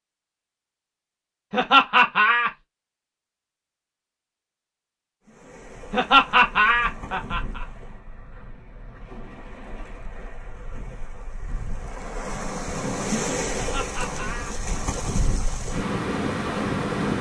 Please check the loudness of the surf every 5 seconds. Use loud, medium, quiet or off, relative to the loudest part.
off, quiet, medium, loud.